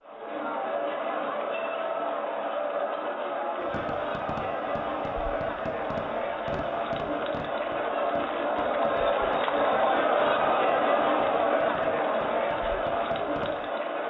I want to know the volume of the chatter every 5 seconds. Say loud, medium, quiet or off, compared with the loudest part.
medium, loud, loud.